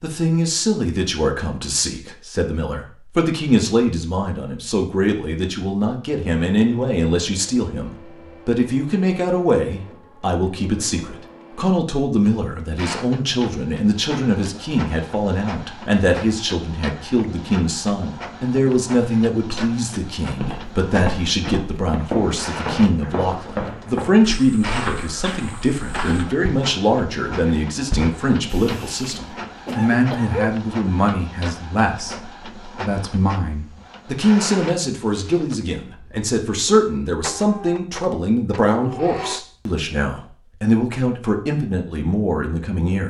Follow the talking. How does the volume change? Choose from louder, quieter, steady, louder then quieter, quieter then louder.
steady.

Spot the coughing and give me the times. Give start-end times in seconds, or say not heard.
28.5-30.5.